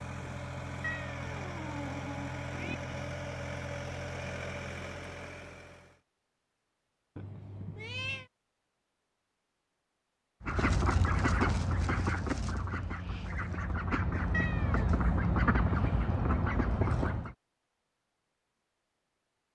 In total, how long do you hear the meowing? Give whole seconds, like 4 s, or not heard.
4 s.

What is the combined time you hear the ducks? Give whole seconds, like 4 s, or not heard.
7 s.